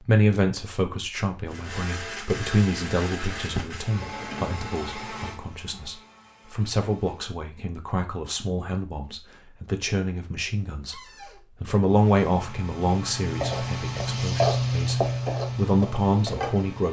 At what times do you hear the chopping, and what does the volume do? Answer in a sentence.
The chopping can't be heard in this clip.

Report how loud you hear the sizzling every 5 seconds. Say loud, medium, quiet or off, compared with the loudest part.
off, off, loud, loud.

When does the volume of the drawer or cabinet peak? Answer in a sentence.
The loudest moment of the drawer or cabinet is at 4 seconds.